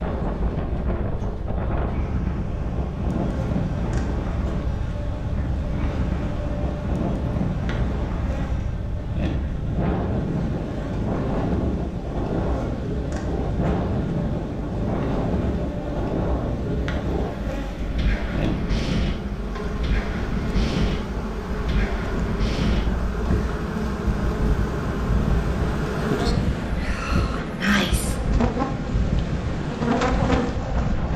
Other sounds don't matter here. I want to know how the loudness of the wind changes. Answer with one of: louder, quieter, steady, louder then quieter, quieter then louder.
steady.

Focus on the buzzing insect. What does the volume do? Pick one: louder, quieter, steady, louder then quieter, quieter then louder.
louder.